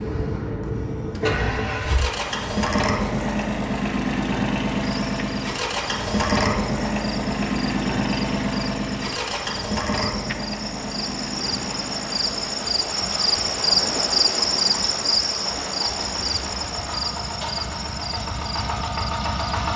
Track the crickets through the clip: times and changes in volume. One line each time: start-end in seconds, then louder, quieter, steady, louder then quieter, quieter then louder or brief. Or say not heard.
4.8-19.7 louder then quieter.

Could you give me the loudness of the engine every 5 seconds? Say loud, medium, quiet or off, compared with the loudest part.
loud, loud, medium, medium.